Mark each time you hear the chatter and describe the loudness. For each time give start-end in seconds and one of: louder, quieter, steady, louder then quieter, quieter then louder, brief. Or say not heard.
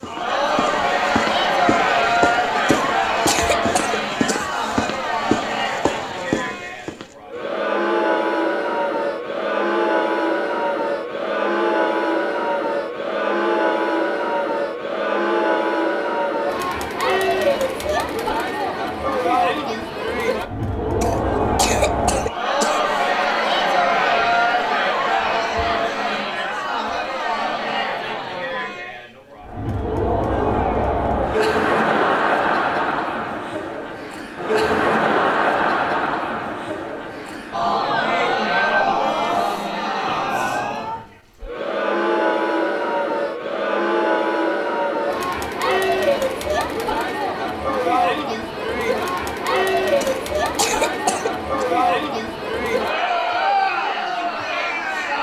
0.0-55.1 steady.